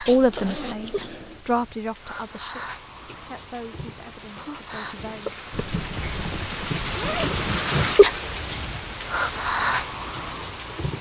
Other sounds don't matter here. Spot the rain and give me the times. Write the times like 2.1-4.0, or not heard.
0.0-10.9.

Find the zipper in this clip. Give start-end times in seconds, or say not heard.
0.1-1.4, 5.5-7.3.